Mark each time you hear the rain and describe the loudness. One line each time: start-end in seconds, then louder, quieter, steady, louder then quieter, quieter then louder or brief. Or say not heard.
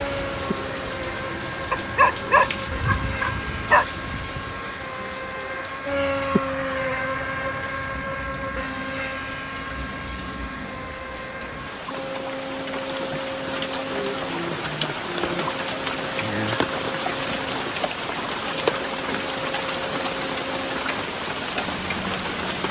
0.0-22.6 quieter then louder.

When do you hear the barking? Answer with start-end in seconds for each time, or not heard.
1.7-3.9.